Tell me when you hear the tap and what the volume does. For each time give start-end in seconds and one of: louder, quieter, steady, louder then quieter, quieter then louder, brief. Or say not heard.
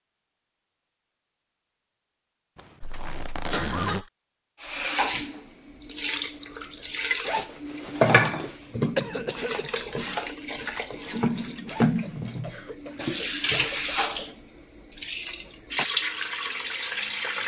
4.6-17.4 steady.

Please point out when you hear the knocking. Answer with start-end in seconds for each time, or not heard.
not heard.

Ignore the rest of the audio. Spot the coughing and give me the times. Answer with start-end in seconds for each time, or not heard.
2.8-4.1, 8.9-9.8, 12.0-14.3.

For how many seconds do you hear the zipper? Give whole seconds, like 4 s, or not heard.
4 s.